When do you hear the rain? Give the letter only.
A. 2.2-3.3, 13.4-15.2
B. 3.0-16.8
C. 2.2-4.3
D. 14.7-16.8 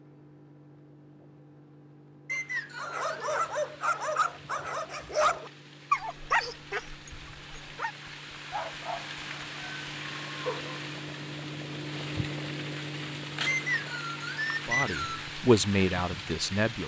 B.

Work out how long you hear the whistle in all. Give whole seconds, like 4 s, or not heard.
3 s.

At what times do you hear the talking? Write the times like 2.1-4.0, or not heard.
14.7-16.8.